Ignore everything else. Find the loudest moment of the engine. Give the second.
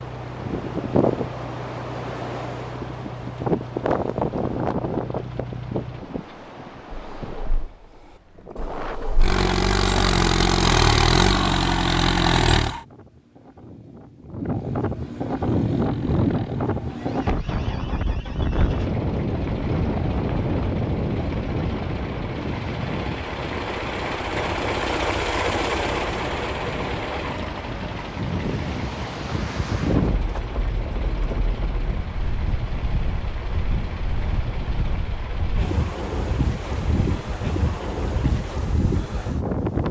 11 s.